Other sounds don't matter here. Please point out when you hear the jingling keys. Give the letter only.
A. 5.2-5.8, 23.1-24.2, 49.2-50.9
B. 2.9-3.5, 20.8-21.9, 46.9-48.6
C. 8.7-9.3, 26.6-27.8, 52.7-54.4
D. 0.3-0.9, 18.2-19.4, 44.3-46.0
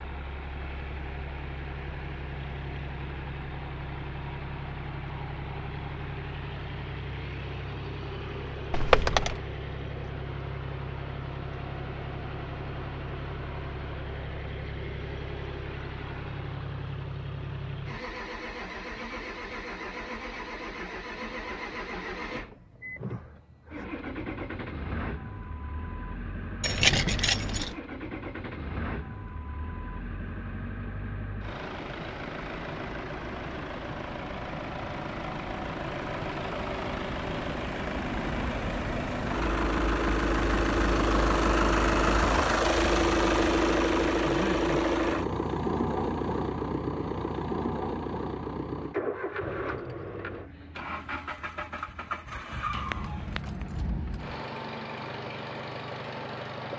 C.